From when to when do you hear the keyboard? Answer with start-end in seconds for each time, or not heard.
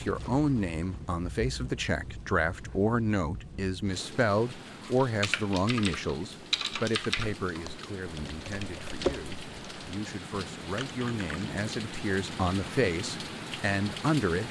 4.8-11.4.